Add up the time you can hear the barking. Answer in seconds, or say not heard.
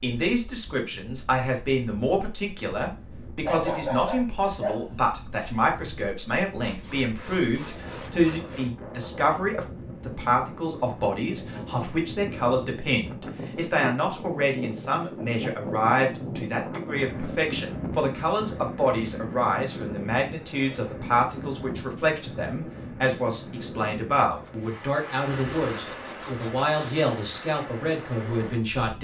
2 s.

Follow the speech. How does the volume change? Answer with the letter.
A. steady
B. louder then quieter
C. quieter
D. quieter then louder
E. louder
A.